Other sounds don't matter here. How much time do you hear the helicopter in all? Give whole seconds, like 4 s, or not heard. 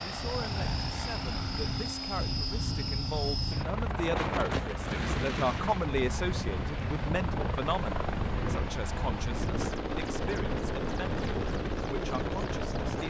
13 s.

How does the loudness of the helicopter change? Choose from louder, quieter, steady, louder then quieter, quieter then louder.
steady.